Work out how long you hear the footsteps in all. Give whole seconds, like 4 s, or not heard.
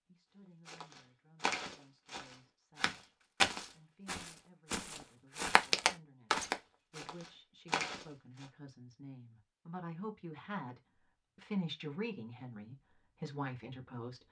8 s.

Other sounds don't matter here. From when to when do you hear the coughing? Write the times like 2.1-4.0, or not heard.
not heard.